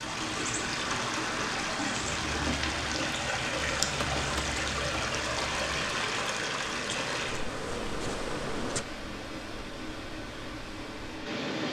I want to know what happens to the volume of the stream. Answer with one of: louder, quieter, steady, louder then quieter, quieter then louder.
quieter.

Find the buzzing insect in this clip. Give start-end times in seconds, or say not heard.
2.0-8.8.